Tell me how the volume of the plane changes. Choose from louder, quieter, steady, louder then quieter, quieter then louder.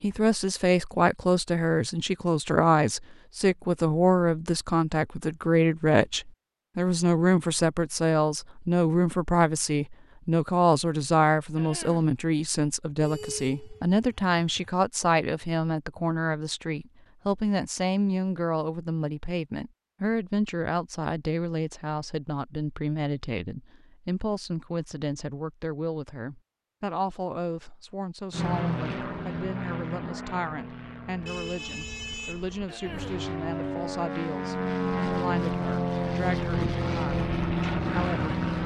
quieter then louder.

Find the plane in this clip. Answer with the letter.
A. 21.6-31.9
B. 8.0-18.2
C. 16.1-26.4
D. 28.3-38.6
D.